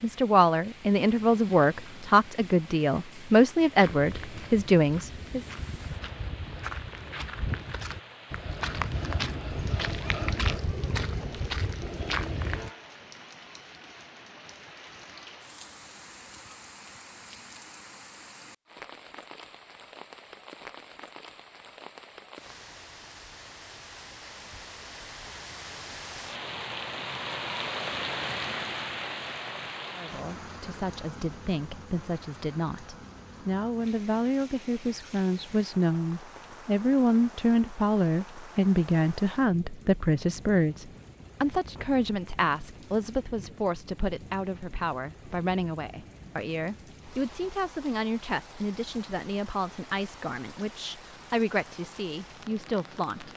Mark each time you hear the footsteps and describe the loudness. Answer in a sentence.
The footsteps can be heard from 3.8 to 12.7 s, getting louder.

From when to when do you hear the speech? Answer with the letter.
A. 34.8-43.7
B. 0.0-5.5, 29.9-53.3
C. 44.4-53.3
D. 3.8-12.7
B.